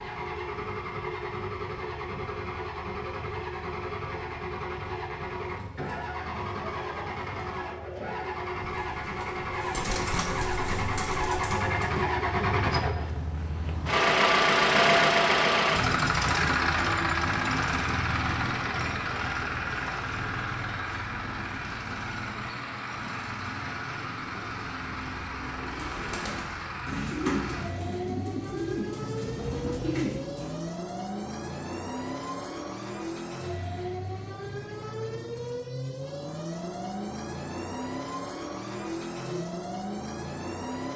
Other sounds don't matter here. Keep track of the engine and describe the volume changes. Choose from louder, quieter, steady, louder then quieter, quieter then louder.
louder then quieter.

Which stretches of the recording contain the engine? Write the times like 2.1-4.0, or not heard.
0.0-40.9.